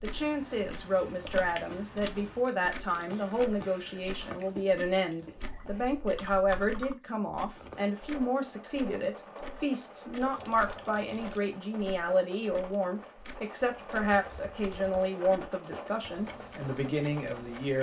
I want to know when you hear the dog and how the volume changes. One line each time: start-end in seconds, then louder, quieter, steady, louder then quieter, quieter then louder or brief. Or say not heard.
not heard.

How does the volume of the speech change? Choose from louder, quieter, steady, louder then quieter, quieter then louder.
steady.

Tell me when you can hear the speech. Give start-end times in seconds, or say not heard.
0.0-17.7.